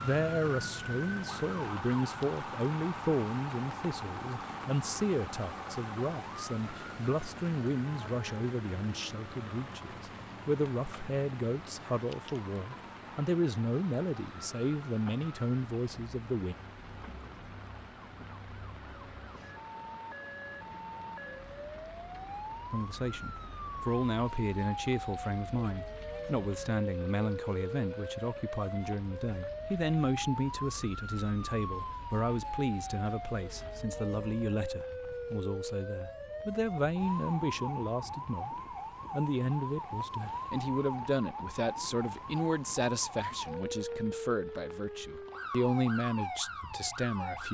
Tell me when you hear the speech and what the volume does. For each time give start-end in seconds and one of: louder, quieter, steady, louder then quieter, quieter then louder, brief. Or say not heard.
0.0-16.6 steady
22.7-47.4 steady.